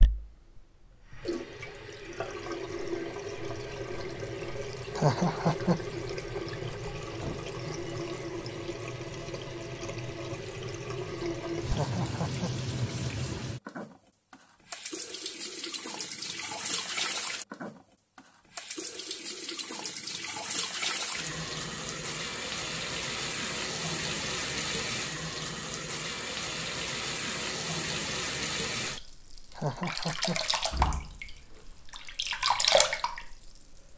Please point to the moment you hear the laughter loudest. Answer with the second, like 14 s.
5 s.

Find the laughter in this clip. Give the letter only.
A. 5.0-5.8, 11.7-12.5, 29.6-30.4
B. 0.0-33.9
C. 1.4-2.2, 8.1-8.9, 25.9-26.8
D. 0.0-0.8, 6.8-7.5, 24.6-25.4
A.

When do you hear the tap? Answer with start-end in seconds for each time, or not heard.
0.0-33.9.